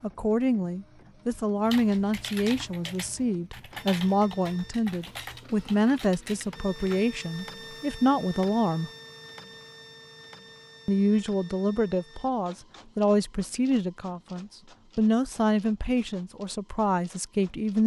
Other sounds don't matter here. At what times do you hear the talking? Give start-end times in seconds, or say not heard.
0.0-8.9, 10.8-17.8.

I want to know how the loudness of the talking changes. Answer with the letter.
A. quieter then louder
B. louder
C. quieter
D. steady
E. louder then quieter
D.